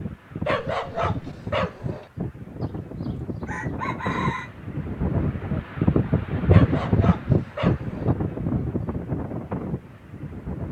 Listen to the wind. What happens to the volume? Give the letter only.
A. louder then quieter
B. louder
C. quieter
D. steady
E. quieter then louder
A.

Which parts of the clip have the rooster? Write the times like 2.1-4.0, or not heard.
3.5-4.5.